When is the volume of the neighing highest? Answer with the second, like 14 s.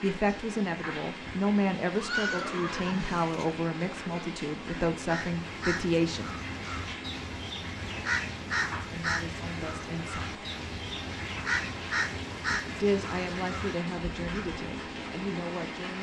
2 s.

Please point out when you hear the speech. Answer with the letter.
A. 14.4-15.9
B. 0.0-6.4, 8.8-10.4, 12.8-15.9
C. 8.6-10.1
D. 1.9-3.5
B.